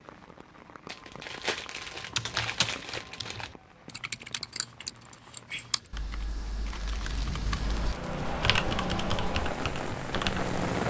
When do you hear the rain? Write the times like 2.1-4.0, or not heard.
0.0-10.8.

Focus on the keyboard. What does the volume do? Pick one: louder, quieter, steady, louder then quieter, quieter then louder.
quieter then louder.